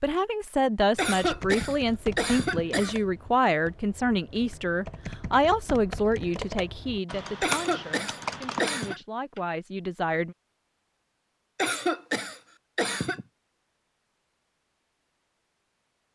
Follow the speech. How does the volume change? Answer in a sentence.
The loudness of the speech goes down.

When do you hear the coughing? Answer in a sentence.
The coughing can be heard from 0.9 to 3.0 s, from 7.4 to 9.0 s and from 11.6 to 13.2 s.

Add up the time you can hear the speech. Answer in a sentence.
The speech can be heard for 10 seconds in total.